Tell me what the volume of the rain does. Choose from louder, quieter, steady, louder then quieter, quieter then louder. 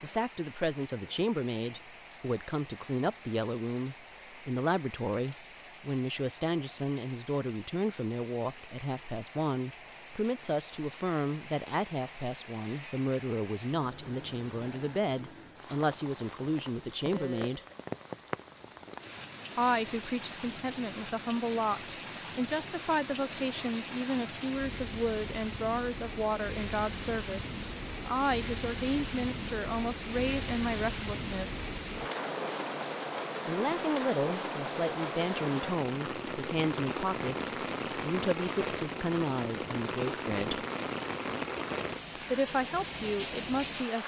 louder.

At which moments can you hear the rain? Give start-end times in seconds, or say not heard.
0.0-44.0.